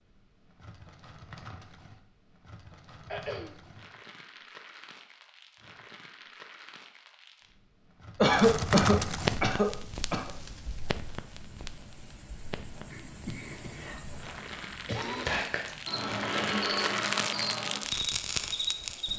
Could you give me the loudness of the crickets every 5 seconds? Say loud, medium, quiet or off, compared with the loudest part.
off, off, quiet, loud.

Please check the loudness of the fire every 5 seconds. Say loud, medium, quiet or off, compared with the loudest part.
quiet, loud, medium, loud.